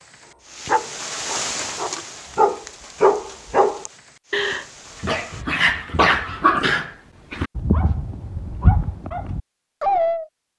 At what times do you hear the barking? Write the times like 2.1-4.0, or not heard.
0.7-10.2.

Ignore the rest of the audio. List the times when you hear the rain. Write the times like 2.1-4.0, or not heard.
0.0-5.5.